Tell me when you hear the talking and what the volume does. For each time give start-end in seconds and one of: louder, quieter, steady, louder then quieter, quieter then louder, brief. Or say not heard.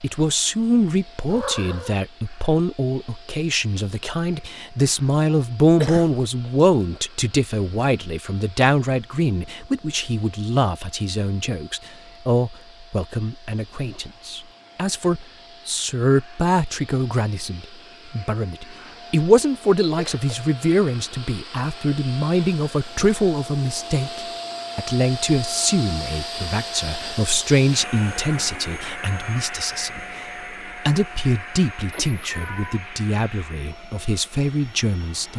0.0-30.1 steady
30.9-35.3 quieter then louder.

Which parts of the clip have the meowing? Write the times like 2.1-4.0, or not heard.
1.2-2.0, 31.9-32.8.